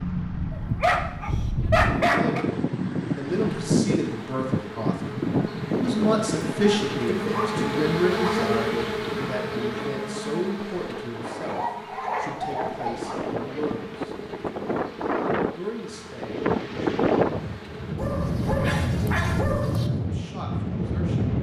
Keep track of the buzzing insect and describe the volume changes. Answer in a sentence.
The loudness of the buzzing insect goes up, then down.